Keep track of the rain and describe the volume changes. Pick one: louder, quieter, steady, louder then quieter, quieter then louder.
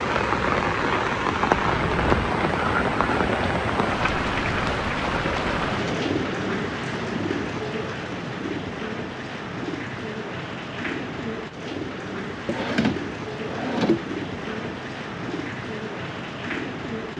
quieter.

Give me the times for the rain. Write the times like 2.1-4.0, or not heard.
0.0-17.1.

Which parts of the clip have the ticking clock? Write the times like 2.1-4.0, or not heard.
not heard.